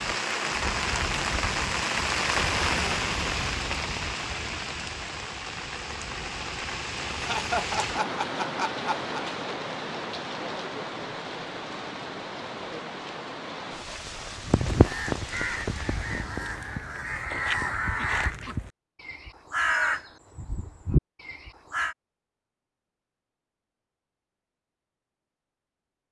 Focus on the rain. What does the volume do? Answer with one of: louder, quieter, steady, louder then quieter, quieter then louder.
quieter.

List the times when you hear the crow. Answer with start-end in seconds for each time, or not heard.
14.4-21.9.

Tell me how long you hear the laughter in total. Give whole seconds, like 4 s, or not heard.
2 s.